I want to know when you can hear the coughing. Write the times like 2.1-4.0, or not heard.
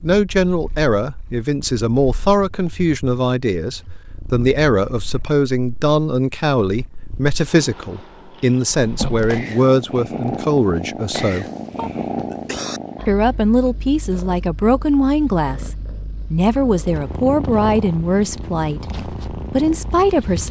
11.8-12.8.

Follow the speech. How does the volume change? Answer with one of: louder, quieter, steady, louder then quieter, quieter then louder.
steady.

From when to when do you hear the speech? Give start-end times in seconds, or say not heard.
0.0-11.4, 13.1-20.4.